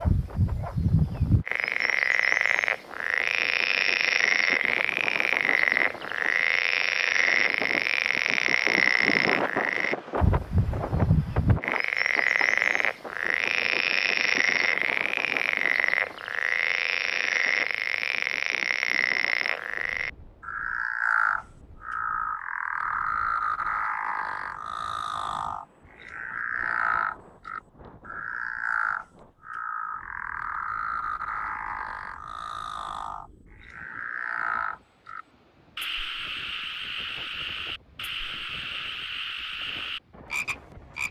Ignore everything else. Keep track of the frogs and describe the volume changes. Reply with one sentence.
The loudness of the frogs goes down.